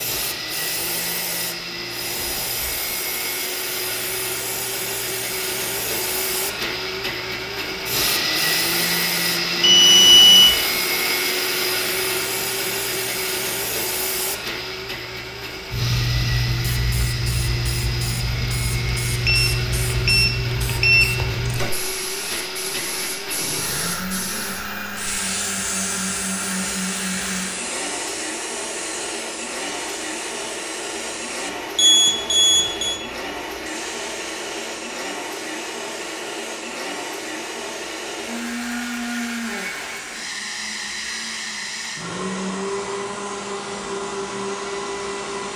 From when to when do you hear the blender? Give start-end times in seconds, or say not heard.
0.0-45.5.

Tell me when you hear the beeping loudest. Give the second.
10 s.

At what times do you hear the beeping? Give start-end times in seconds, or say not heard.
9.6-10.5, 19.2-21.1, 31.8-33.0.